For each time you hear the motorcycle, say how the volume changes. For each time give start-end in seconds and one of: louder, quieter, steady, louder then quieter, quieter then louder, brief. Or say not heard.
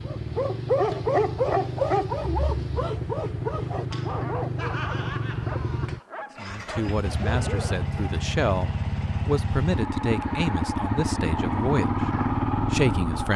0.0-13.3 louder.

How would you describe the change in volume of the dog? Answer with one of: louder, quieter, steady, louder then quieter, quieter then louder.
quieter.